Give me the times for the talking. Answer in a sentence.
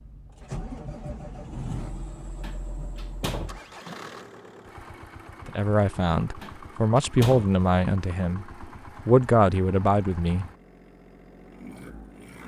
You can hear the talking from 5.5 to 10.4 s.